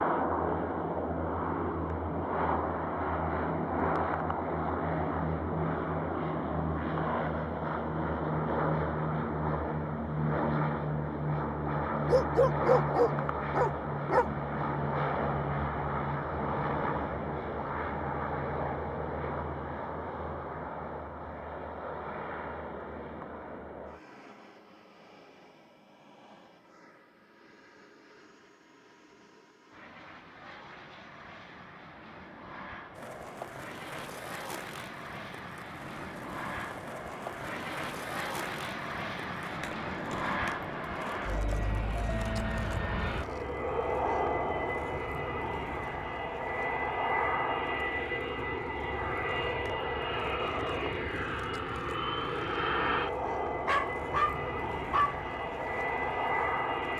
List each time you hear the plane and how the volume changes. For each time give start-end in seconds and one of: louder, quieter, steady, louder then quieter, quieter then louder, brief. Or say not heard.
0.0-56.9 quieter then louder.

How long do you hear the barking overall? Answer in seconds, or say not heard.
4 s.